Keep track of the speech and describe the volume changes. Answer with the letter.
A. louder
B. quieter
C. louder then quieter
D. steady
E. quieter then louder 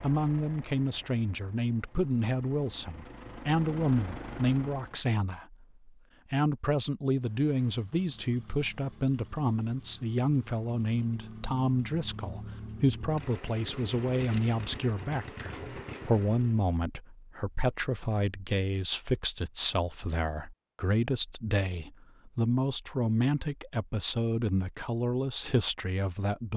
D.